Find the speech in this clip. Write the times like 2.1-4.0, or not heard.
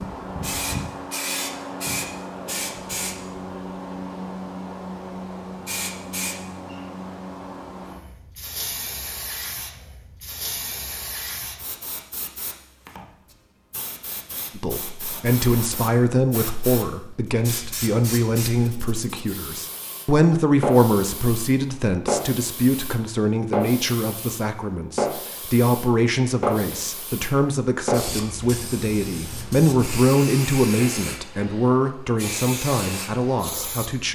14.6-34.1.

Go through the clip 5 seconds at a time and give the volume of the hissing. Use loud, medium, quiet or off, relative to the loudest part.
loud, medium, medium, medium, loud, loud, medium.